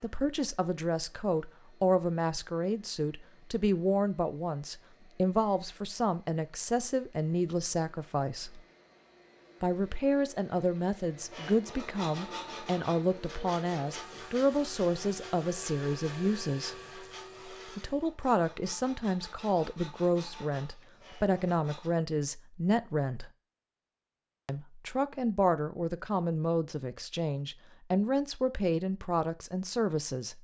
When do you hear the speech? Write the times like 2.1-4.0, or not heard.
0.0-8.6, 9.6-16.8, 17.6-23.3, 24.4-30.3.